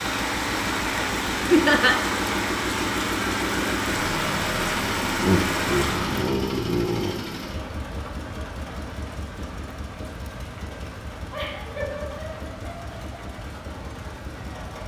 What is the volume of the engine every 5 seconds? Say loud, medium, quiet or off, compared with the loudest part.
loud, loud, medium.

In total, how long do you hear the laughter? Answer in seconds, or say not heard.
4 s.